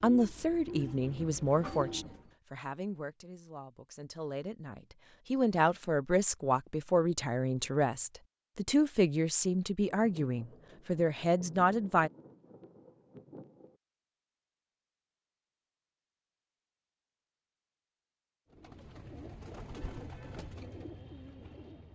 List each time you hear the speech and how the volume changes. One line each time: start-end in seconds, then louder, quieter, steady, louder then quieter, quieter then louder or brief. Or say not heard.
0.0-12.1 quieter then louder.